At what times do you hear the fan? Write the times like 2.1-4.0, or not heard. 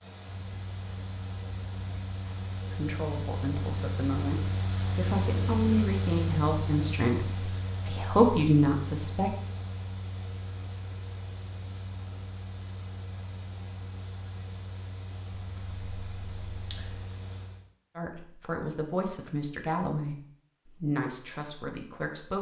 0.0-17.6.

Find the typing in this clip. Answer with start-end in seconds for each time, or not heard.
15.3-17.1.